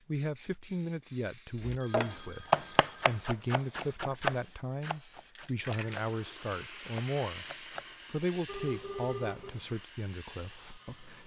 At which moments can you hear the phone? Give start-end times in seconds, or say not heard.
1.8-3.2, 8.4-9.6.